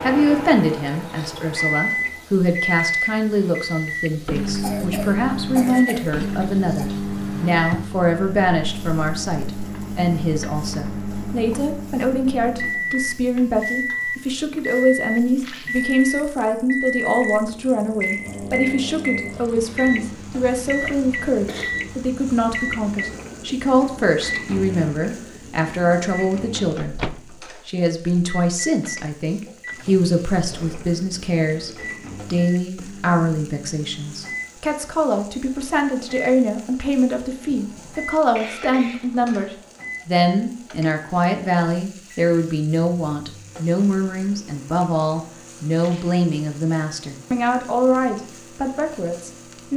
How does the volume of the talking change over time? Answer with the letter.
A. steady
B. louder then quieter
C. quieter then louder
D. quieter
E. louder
A.